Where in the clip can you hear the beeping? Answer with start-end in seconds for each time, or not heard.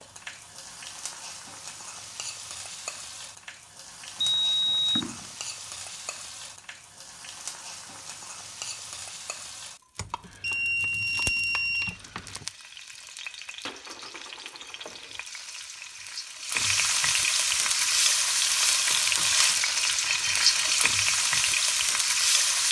4.2-5.3, 9.9-12.4, 20.1-20.7.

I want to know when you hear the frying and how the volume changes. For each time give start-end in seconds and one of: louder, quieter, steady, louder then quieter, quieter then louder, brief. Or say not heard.
0.0-22.6 louder.